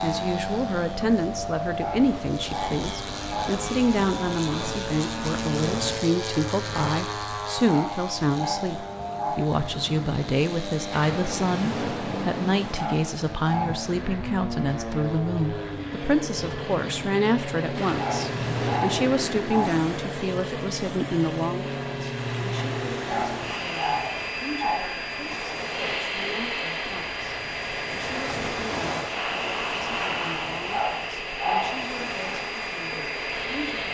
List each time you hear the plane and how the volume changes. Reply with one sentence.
The plane can be heard from 0.0 to 33.8 s, at a steady volume.